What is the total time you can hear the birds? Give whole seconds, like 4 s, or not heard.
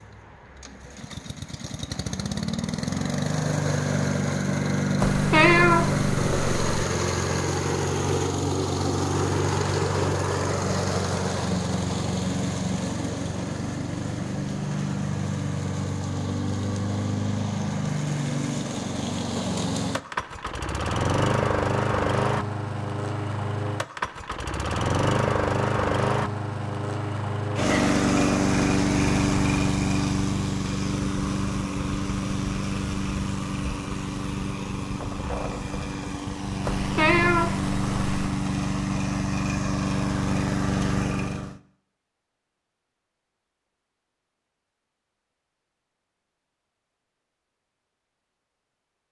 not heard.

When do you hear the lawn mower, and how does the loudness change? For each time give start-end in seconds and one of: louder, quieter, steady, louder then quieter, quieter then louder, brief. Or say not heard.
0.0-41.6 steady.